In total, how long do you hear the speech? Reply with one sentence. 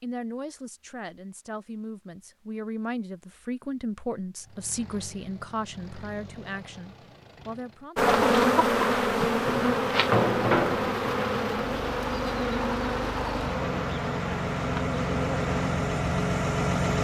The speech can be heard for 8 seconds in total.